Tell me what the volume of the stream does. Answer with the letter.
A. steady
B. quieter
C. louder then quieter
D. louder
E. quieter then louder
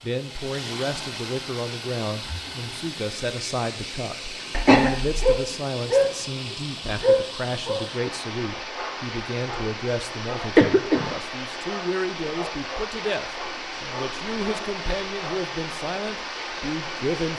A.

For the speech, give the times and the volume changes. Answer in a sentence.
The speech can be heard from 0.0 to 17.3 s, at a steady volume.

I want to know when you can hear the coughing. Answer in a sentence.
The coughing can be heard from 4.5 to 5.2 s and from 10.6 to 11.2 s.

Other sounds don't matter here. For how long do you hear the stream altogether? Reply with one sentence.
You can hear the stream for 17 seconds altogether.